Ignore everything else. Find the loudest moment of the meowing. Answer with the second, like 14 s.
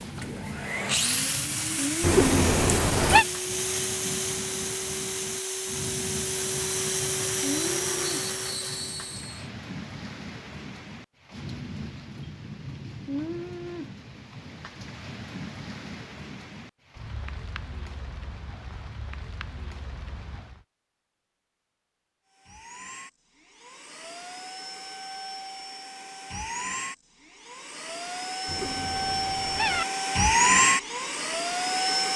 3 s.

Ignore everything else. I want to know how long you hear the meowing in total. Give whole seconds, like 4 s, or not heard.
3 s.